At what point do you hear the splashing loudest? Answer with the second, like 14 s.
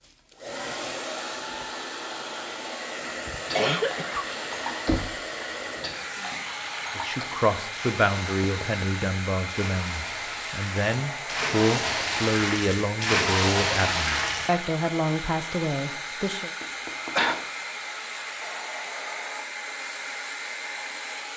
13 s.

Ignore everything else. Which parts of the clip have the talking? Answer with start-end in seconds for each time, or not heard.
7.0-16.5.